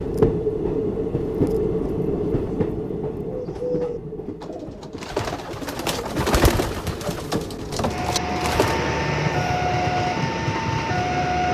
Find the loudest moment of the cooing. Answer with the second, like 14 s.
6 s.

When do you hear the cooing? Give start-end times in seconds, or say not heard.
3.2-8.8.